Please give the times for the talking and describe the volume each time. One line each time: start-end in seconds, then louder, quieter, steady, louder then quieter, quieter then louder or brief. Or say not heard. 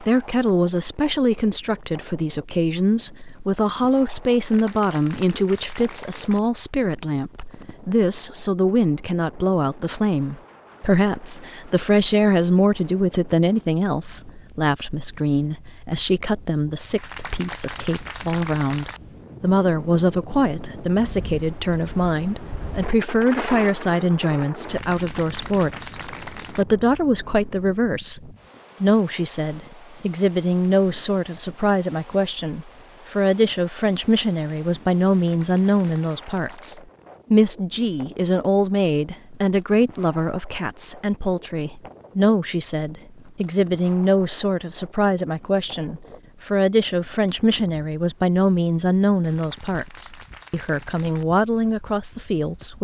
0.0-52.7 steady.